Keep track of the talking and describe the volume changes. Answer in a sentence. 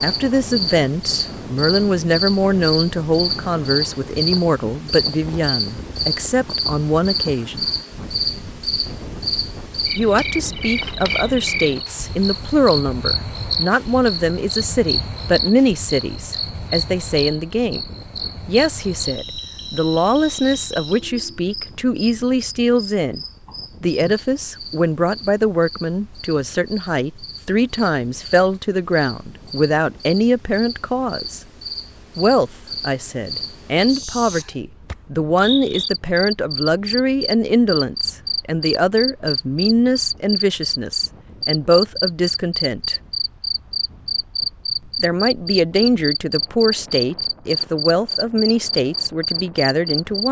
The loudness of the talking stays about the same.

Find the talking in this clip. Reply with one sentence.
You can hear the talking from 0.0 to 7.7 s, from 9.9 to 17.8 s, from 18.4 to 23.2 s, from 23.8 to 31.4 s, from 32.1 to 43.0 s and from 45.0 to 50.2 s.